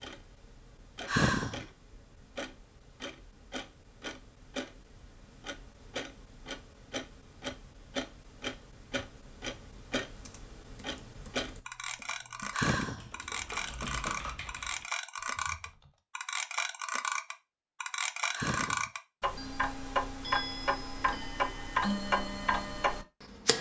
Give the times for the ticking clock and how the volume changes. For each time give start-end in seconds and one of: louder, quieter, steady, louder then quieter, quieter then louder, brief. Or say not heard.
0.0-23.5 louder.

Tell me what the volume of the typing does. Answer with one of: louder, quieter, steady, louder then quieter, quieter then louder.
louder then quieter.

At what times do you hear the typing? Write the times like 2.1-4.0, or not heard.
10.1-16.0.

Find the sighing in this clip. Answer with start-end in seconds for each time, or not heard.
1.1-1.6, 12.5-13.1, 18.3-18.9.